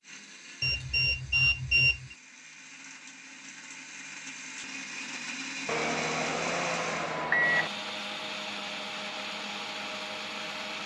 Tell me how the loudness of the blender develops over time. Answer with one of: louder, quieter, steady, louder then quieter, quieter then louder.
louder.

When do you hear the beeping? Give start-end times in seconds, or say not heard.
0.6-2.1, 5.7-7.7.